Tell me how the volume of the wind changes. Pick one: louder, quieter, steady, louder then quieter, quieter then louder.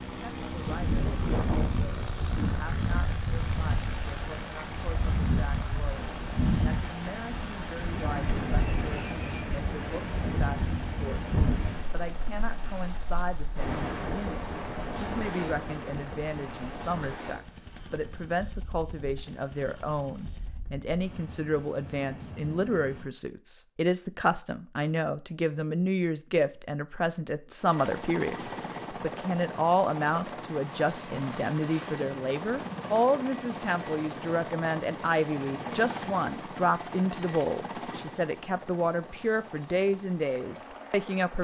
quieter.